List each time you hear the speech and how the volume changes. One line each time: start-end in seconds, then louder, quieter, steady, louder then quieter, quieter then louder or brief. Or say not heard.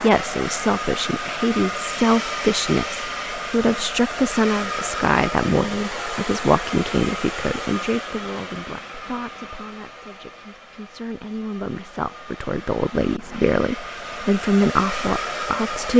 0.0-15.9 quieter then louder.